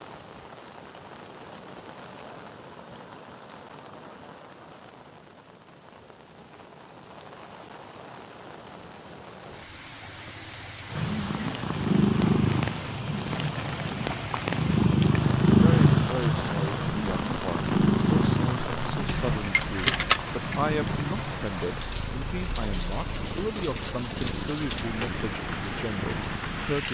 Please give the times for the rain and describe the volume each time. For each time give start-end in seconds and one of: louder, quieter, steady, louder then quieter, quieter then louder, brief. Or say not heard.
0.0-26.8 louder.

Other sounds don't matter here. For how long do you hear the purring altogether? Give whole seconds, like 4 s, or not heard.
16 s.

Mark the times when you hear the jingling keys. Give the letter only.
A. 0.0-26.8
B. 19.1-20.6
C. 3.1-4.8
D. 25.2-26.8
B.